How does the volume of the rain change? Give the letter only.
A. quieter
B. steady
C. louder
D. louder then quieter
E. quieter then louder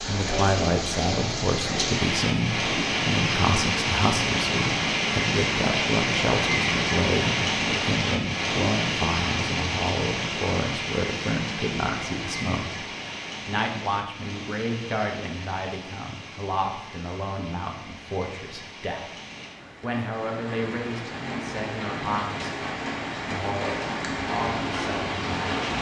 E.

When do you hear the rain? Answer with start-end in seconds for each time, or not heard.
0.0-25.7.